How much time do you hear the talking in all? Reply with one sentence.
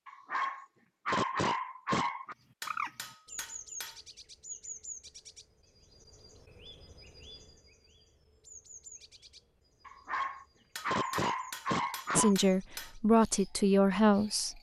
The talking can be heard for 2 seconds in total.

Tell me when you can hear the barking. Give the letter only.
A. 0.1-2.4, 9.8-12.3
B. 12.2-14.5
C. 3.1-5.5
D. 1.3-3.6
A.